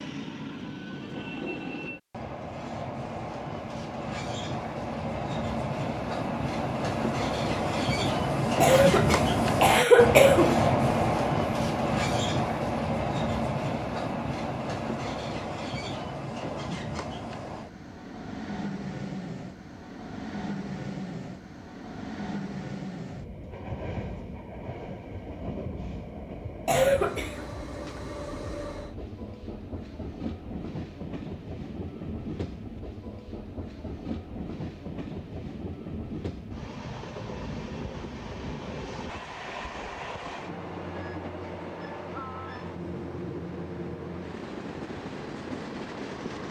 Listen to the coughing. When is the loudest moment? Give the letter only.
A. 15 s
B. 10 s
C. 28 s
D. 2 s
B.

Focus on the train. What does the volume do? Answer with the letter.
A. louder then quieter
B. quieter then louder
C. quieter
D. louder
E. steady
C.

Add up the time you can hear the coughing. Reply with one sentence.
The coughing can be heard for 3 seconds in total.